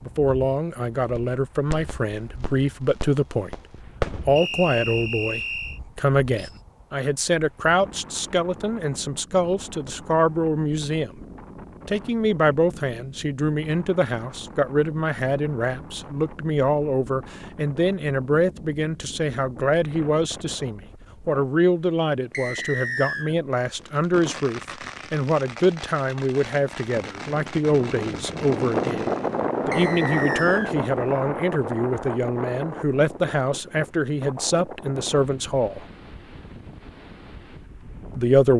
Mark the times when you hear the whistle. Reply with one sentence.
You can hear the whistle from 4.3 to 5.8 s, from 22.3 to 23.4 s and from 29.7 to 30.8 s.